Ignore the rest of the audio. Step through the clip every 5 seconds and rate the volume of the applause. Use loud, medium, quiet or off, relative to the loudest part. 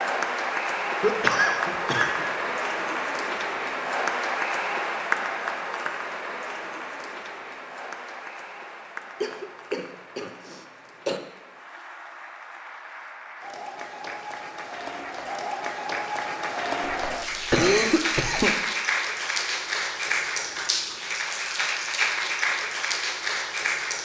loud, medium, quiet, loud, loud.